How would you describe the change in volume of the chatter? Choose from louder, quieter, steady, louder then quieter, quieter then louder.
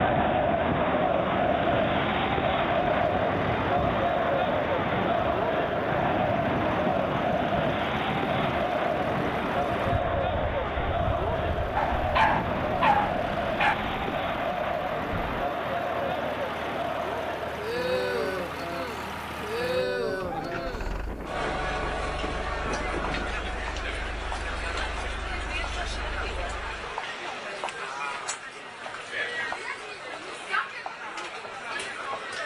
quieter.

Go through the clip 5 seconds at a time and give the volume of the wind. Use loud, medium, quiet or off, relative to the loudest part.
loud, loud, medium, medium, medium, off, off.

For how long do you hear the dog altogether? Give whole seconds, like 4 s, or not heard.
2 s.